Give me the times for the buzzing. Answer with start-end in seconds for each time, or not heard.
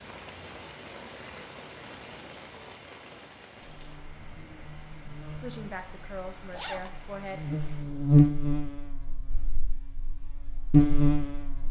3.6-11.6.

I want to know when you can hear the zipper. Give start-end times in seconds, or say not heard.
6.5-7.0.